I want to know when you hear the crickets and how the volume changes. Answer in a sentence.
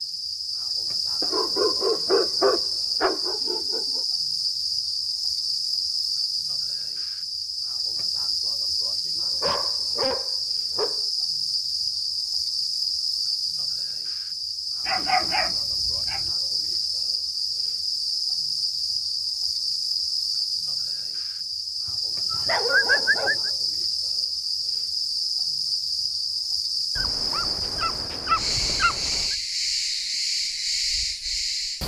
The crickets can be heard from 0.0 to 31.8 s, at a steady volume.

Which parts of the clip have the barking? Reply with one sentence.
You can hear the barking from 1.2 to 4.0 s, from 9.4 to 11.1 s, from 14.8 to 16.3 s, from 22.3 to 23.5 s and from 26.9 to 29.4 s.